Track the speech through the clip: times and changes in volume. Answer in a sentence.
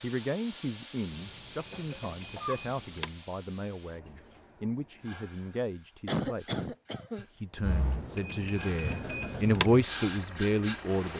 The speech can be heard from 0.0 to 11.1 s, getting louder.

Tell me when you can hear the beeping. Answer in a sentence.
You can hear the beeping from 1.1 to 3.1 s and from 7.8 to 9.7 s.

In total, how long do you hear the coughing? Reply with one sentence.
The coughing can be heard for 2 seconds in total.